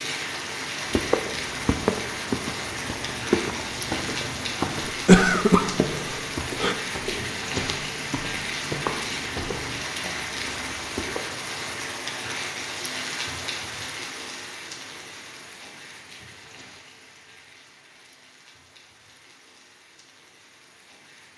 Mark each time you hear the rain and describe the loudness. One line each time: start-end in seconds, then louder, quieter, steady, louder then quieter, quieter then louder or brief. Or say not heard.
0.0-21.3 quieter.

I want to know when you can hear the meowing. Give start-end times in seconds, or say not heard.
not heard.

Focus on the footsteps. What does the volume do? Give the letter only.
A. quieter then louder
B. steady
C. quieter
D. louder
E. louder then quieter
C.